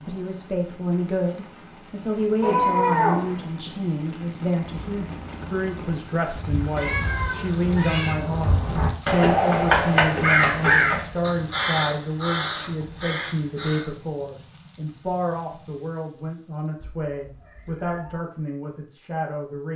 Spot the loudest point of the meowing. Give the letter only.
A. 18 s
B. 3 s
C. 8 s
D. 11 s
B.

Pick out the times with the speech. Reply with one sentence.
The speech can be heard from 0.1 to 19.7 s.